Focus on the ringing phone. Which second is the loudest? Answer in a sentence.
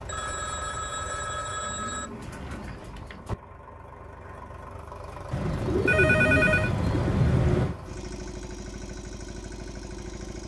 The volume of the ringing phone peaks at 6 seconds.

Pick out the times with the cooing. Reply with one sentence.
The cooing can be heard from 1.6 to 3.4 s and from 5.3 to 7.8 s.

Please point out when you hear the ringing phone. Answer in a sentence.
The ringing phone can be heard from 0.1 to 2.1 s and from 5.8 to 6.7 s.